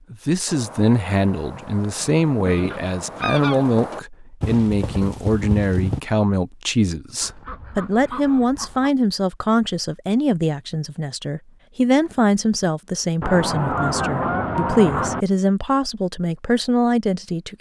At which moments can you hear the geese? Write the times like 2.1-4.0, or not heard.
2.0-3.6, 7.2-8.9, 13.2-15.2.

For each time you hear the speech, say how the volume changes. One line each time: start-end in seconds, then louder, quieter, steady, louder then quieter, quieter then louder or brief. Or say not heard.
0.1-17.5 steady.